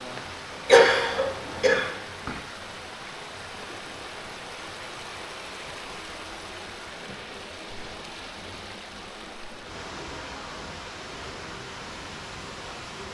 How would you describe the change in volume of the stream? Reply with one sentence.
The volume of the stream stays about the same.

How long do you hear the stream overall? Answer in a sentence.
The stream can be heard for 13 seconds in total.